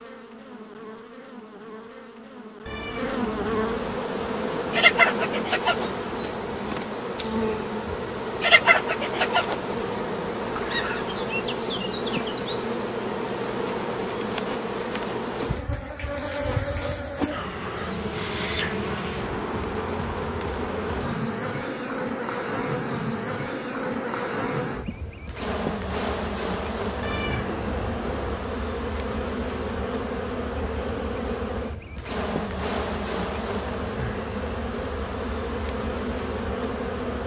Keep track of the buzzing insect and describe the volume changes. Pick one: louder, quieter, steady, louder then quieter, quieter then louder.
steady.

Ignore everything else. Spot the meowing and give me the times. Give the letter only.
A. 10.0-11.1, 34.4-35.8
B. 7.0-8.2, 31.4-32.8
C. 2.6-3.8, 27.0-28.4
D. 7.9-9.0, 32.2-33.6
C.